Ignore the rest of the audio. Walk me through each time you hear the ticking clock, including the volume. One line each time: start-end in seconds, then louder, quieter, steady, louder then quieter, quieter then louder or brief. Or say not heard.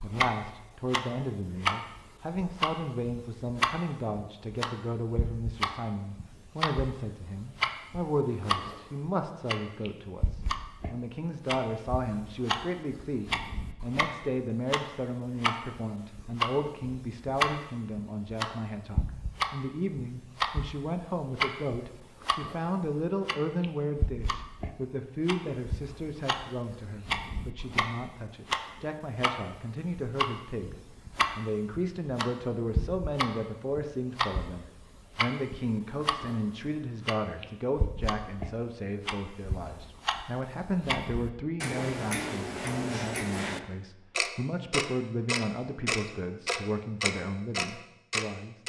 0.0-48.6 steady.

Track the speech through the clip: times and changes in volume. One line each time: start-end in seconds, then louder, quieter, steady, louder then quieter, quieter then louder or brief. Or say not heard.
0.0-30.8 steady
31.4-48.5 steady.